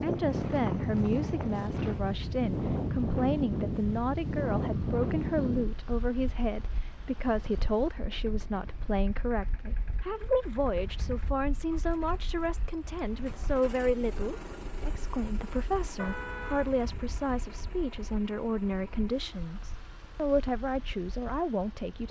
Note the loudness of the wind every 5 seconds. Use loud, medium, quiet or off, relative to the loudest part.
loud, medium, quiet, quiet, quiet.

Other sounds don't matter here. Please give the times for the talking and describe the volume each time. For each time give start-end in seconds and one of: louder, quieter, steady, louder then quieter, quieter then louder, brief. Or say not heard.
0.0-22.0 steady.